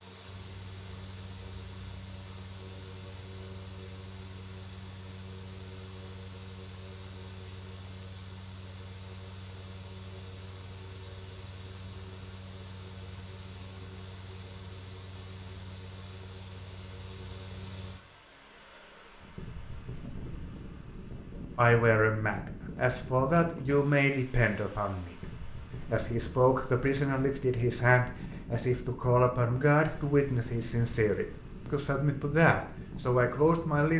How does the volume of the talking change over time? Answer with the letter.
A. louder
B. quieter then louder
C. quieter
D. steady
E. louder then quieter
D.